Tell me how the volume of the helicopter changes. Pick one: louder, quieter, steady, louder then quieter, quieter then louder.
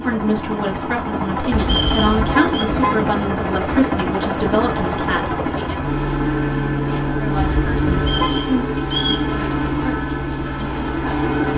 steady.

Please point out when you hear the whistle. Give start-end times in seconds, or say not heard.
1.6-2.7, 8.0-9.3.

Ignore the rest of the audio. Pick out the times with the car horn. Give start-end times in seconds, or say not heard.
1.5-3.0, 7.3-8.4.